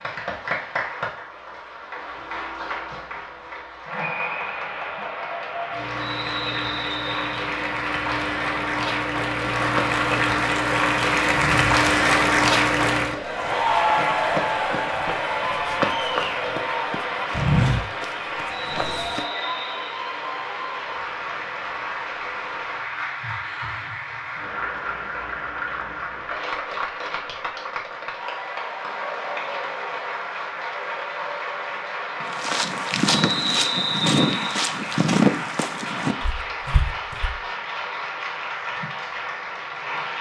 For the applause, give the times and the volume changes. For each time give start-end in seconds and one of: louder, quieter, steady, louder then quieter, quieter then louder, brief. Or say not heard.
0.0-40.1 louder then quieter.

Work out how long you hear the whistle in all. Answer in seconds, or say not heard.
4 s.